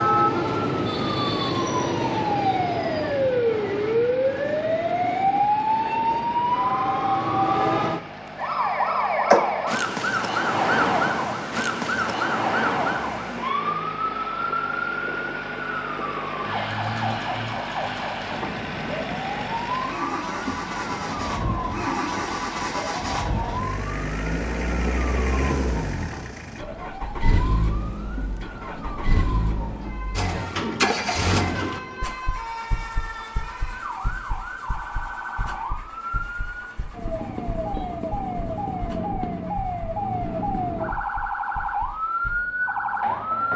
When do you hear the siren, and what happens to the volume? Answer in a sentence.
You can hear the siren from 0.0 to 43.5 s, getting quieter then louder.